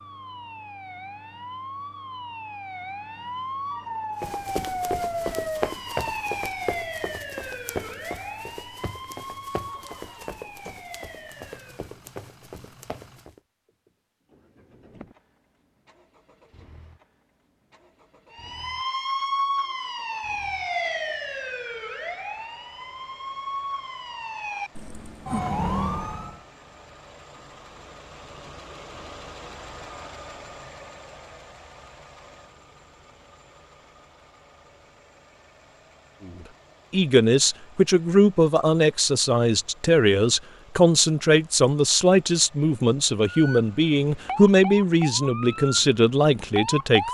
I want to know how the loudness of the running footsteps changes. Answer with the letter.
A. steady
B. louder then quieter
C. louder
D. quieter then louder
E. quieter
E.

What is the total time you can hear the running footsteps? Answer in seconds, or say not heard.
9 s.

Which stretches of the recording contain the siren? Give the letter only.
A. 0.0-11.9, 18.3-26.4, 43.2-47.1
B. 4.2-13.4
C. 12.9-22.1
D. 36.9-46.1
A.